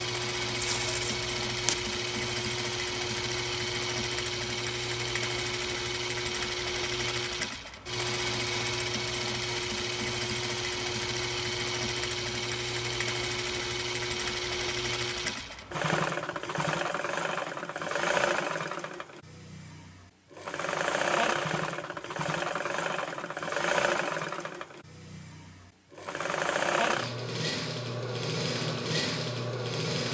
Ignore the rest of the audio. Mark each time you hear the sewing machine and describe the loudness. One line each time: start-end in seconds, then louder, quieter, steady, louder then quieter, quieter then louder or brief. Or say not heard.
0.0-30.0 steady.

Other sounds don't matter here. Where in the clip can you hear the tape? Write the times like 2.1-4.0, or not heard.
0.6-1.9.